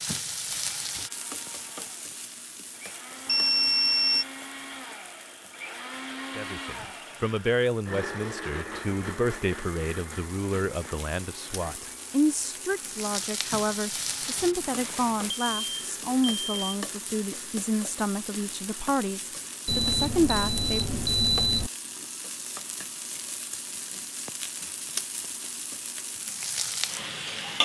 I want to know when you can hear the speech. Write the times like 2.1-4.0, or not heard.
6.3-20.9.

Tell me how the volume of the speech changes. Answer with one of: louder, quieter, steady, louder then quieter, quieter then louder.
steady.